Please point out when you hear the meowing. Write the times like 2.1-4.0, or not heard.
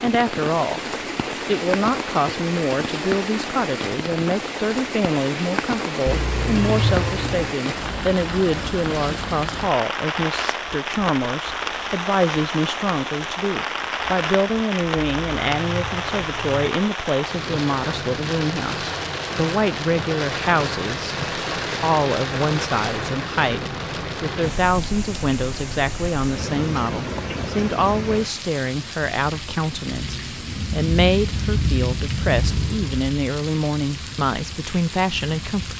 6.0-7.5, 14.9-16.6, 32.3-33.0.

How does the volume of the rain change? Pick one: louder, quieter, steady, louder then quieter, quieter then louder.
steady.